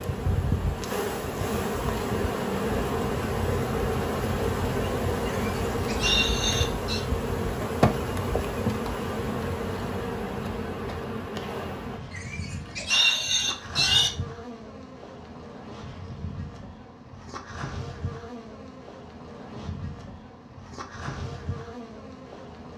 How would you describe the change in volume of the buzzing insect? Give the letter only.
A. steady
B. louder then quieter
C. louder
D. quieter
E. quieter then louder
D.